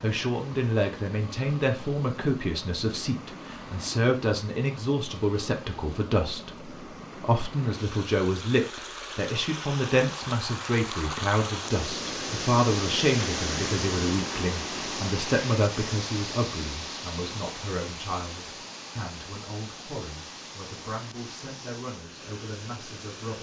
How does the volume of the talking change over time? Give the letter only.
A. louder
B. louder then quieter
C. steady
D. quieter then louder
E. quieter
E.